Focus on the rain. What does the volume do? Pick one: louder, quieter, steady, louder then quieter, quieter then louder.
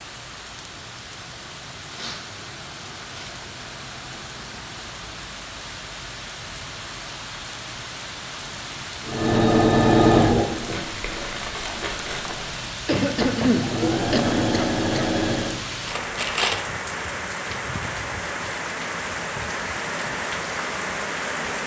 louder.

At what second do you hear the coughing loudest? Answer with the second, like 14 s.
13 s.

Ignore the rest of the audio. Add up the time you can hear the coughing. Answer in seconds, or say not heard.
2 s.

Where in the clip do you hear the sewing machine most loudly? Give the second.
10 s.